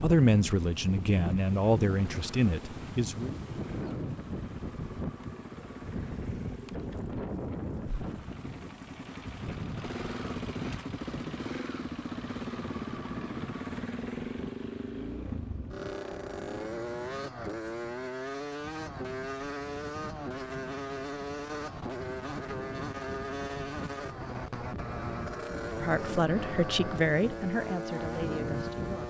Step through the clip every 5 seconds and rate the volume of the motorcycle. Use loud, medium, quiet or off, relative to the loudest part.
medium, medium, loud, loud, loud, loud.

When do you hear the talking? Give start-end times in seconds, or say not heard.
0.0-3.3, 25.8-29.0.